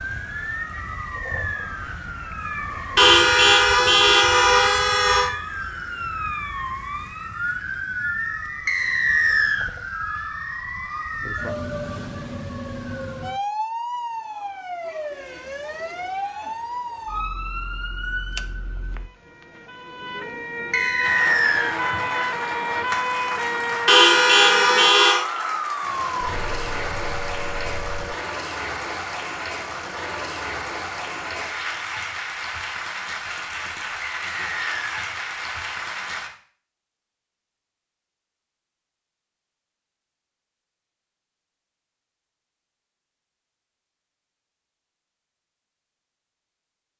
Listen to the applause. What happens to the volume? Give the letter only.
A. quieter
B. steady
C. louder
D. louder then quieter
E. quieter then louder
B.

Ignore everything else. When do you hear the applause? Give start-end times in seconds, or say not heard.
21.0-36.3.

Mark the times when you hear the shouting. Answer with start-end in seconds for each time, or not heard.
not heard.